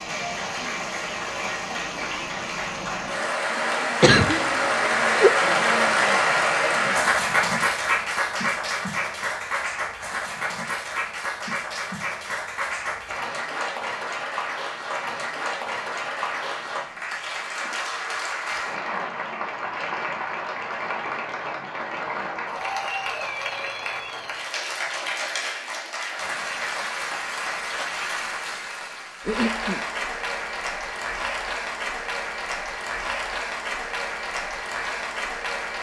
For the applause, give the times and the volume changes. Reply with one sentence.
You can hear the applause from 0.0 to 35.7 s, getting quieter.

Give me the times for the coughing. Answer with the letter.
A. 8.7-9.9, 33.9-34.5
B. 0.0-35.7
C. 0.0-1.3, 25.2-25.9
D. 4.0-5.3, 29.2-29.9
D.